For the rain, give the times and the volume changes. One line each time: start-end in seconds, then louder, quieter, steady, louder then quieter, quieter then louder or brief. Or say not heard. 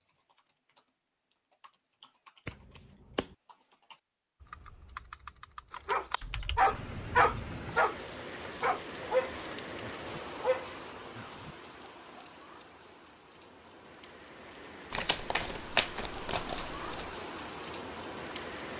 6.7-18.7 quieter then louder.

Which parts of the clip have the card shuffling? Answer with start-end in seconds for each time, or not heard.
2.5-3.4, 14.9-17.1.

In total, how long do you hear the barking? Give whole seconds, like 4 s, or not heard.
5 s.